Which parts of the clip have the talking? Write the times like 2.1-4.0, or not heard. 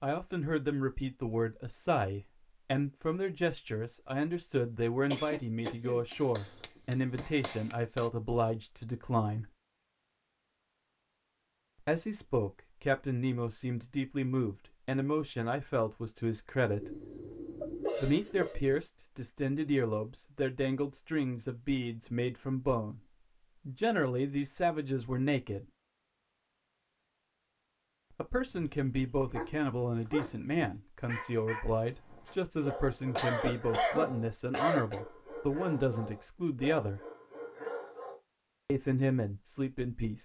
0.0-9.5, 11.8-17.0, 18.0-23.1, 23.6-25.6, 28.1-37.0, 38.6-40.2.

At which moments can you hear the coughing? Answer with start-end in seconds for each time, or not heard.
5.1-7.2, 16.8-18.8, 32.7-35.0.